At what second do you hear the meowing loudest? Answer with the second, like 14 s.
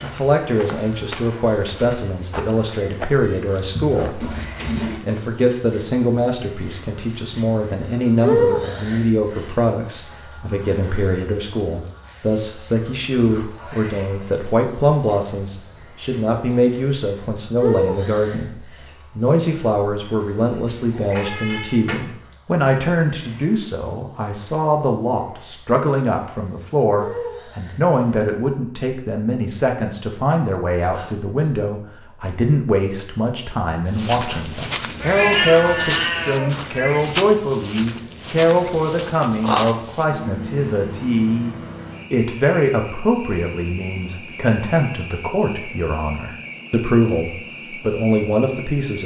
35 s.